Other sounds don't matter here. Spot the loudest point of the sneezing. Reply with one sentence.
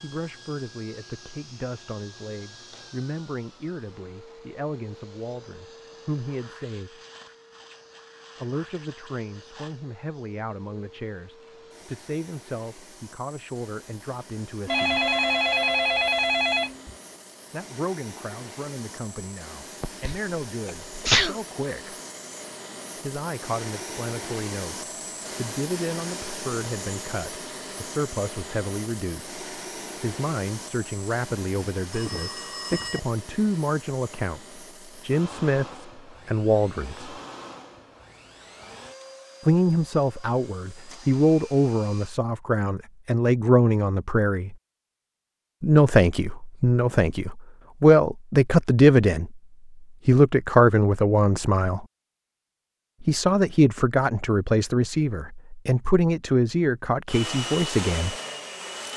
The loudest moment of the sneezing is at 21 seconds.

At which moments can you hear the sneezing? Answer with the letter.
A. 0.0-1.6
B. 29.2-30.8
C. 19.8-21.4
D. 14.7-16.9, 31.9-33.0
C.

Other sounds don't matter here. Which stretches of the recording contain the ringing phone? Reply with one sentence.
The ringing phone can be heard from 14.7 to 16.9 s and from 31.9 to 33.0 s.